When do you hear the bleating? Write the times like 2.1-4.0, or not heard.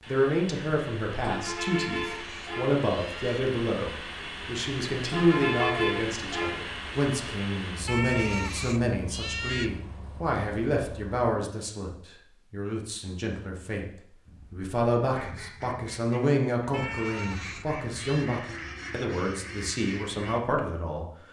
1.7-3.5, 7.8-9.7, 16.7-18.3.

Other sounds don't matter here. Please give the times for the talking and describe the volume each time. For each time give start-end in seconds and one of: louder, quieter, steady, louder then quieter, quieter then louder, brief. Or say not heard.
0.0-21.1 steady.